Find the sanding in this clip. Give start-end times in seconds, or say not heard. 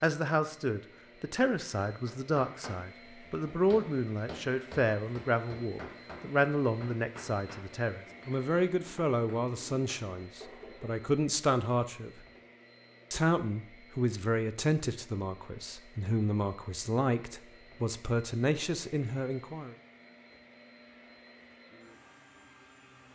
not heard.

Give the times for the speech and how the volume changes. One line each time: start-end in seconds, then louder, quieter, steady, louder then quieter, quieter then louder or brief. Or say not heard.
0.0-12.1 steady
13.1-19.8 steady.